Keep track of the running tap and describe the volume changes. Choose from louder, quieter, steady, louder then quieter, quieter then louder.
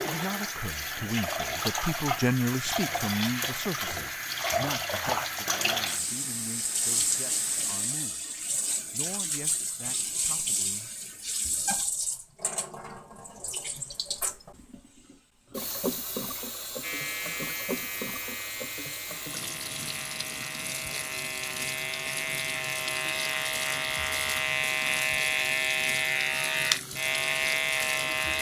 quieter.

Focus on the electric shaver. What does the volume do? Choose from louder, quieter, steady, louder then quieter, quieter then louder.
louder.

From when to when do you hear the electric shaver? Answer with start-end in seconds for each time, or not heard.
16.8-28.3.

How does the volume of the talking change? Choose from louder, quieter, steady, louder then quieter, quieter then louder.
quieter.